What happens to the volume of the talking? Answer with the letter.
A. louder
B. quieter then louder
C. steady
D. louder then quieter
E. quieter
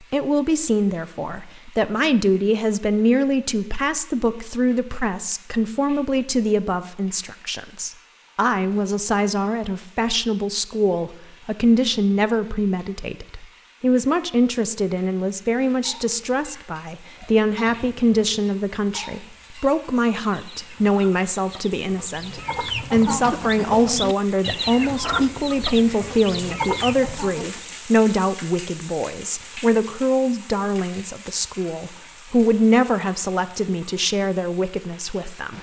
C.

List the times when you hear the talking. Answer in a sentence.
The talking can be heard from 0.1 to 35.5 s.